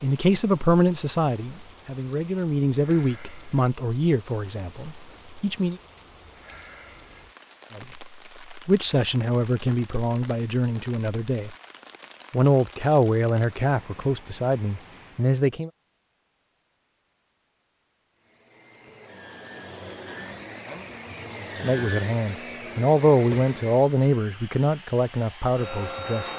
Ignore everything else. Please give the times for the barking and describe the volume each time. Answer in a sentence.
You can't hear the barking here.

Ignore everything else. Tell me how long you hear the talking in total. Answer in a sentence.
You can hear the talking for 18 seconds altogether.